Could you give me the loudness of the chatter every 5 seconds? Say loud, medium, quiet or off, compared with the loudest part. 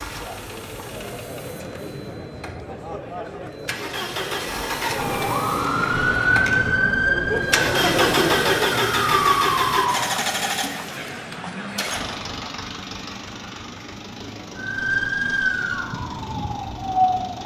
medium, loud, medium, off.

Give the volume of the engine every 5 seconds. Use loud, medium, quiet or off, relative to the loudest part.
medium, loud, medium, quiet.